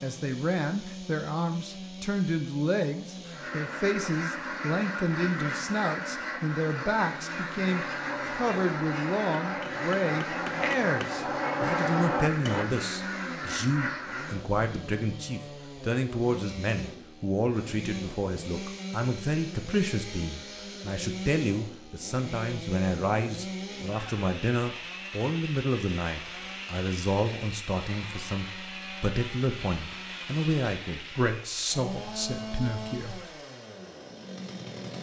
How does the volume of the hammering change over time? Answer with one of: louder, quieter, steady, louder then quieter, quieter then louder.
louder.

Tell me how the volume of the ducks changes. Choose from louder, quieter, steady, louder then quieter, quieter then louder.
steady.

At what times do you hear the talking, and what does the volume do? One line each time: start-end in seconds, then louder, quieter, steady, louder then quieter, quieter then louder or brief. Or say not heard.
0.0-33.3 steady.